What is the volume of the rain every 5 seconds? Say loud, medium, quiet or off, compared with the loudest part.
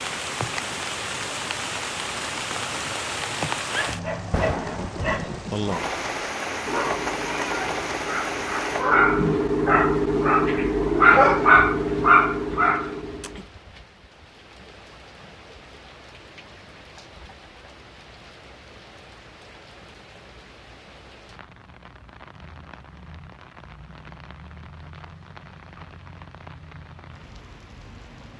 loud, loud, quiet, quiet, quiet, quiet.